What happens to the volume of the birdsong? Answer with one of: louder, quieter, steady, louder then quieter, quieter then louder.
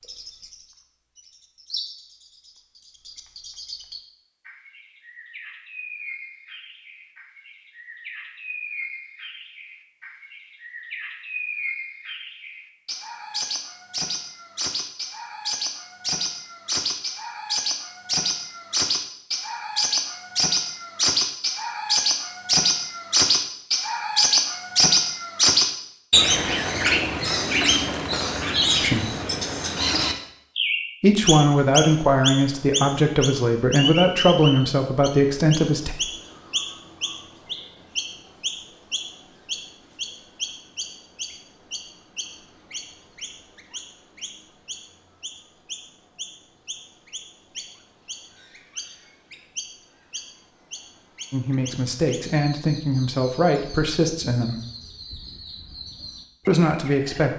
louder then quieter.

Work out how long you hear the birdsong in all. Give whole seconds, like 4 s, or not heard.
57 s.